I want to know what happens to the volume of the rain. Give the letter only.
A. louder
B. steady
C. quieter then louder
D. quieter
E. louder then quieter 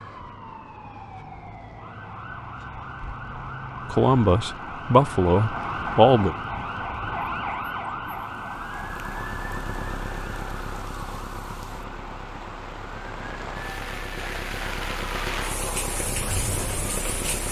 A.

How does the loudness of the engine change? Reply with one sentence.
The volume of the engine goes down, then up.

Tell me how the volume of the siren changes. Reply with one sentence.
The volume of the siren goes up, then down.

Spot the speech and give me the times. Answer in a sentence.
The speech can be heard from 3.9 to 6.3 s.